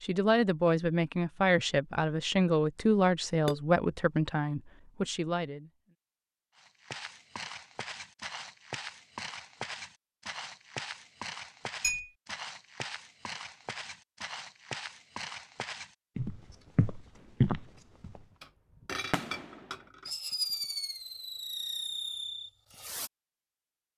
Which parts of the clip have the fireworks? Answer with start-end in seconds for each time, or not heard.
17.1-23.1.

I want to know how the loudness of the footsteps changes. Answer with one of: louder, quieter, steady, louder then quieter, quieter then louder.
louder.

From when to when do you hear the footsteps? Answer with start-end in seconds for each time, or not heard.
6.5-18.2.